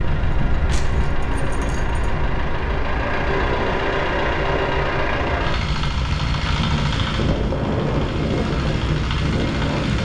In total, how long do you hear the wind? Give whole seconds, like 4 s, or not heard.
10 s.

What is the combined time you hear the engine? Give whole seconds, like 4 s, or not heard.
10 s.